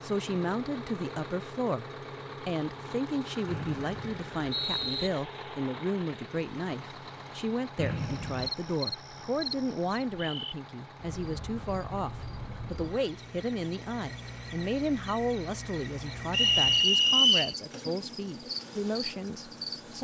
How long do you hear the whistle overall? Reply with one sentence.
The whistle can be heard for 4 seconds in total.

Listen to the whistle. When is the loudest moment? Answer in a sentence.
The volume of the whistle peaks at 17 seconds.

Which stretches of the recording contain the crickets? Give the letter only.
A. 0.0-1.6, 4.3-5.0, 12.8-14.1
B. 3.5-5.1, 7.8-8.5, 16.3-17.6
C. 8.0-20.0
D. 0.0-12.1
C.